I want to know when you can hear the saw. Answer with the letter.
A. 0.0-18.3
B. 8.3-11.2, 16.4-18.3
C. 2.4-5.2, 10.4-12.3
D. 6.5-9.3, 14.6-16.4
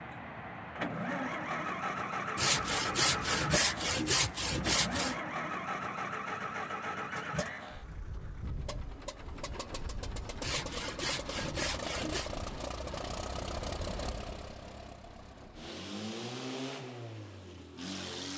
C.